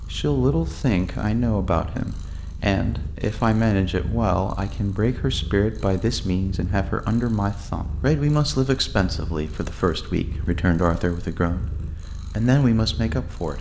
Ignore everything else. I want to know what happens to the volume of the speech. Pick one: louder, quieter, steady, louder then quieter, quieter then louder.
steady.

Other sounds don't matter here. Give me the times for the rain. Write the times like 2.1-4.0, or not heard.
not heard.